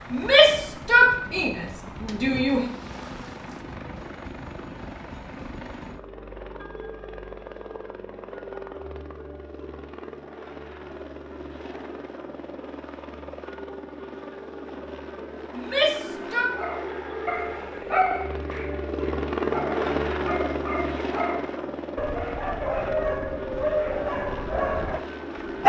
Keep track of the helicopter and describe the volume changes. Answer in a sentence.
The volume of the helicopter goes up.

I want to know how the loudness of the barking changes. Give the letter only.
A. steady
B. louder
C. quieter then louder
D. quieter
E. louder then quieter
C.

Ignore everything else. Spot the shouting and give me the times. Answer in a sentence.
You can hear the shouting from 0.1 to 2.6 s and from 15.5 to 16.5 s.